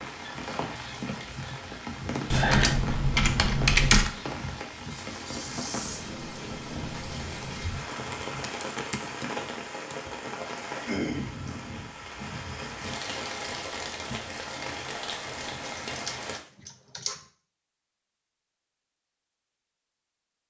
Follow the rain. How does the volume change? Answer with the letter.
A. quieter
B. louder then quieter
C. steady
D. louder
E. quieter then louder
C.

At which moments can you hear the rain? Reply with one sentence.
The rain can be heard from 0.0 to 16.4 s.